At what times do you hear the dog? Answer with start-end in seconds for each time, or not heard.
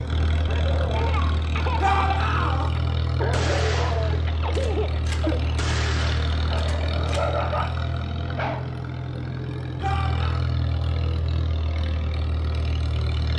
0.5-8.7.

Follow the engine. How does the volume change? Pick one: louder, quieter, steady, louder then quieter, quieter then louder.
steady.